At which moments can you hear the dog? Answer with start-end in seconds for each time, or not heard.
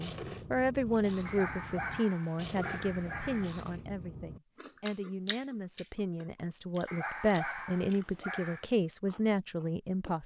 1.2-3.5, 6.8-8.7.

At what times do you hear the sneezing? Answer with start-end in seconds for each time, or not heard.
not heard.